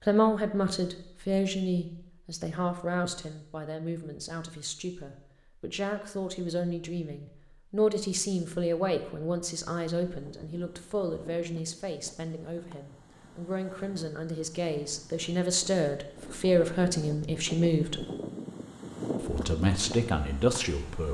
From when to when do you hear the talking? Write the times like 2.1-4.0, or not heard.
0.1-18.1, 19.2-21.0.